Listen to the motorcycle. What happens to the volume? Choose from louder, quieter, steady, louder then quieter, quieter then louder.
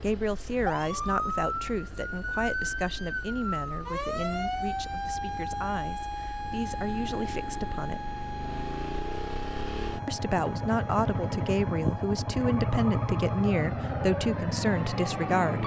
louder.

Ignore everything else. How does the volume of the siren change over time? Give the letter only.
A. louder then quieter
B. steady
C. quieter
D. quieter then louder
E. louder
C.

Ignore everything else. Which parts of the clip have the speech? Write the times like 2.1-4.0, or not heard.
0.0-8.2, 10.1-15.6.